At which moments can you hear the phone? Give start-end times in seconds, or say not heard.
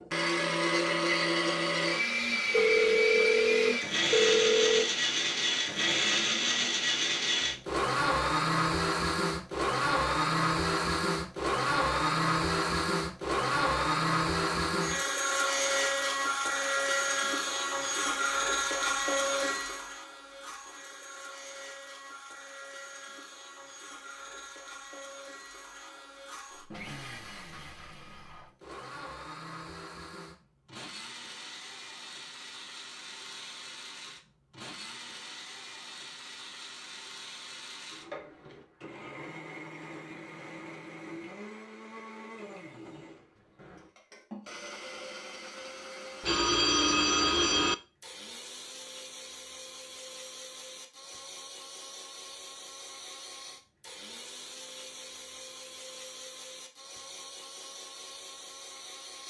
2.5-4.9, 46.2-47.8.